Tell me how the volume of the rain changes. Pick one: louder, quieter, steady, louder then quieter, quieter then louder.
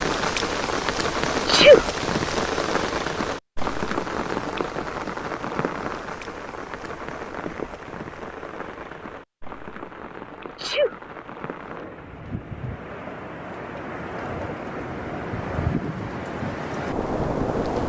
quieter then louder.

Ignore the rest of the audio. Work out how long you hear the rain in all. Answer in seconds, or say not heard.
18 s.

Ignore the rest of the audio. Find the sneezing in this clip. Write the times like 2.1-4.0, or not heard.
1.4-1.9, 10.4-10.9.